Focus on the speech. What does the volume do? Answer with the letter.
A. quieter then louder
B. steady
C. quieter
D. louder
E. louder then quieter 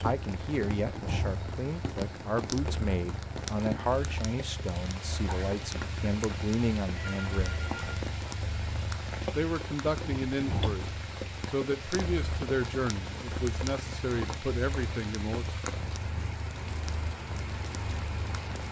B.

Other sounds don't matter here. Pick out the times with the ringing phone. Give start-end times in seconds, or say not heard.
7.0-8.1.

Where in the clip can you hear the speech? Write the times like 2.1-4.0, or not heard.
0.0-7.5, 9.3-15.5.